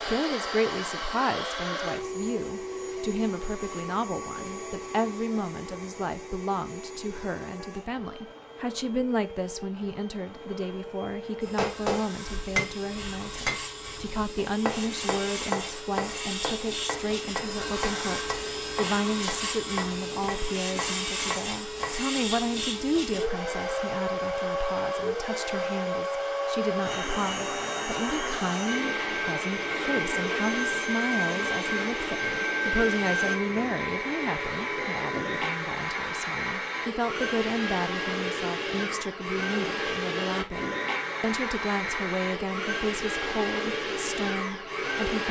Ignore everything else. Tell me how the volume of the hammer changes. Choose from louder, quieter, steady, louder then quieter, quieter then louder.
quieter.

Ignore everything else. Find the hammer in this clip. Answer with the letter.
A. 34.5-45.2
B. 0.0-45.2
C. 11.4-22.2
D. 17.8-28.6
C.